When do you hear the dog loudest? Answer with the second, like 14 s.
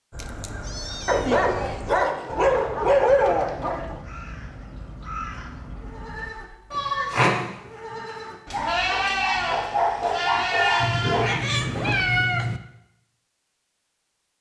3 s.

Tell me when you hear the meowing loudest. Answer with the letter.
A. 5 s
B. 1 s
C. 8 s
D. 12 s
D.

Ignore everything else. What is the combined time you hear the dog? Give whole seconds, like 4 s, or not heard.
6 s.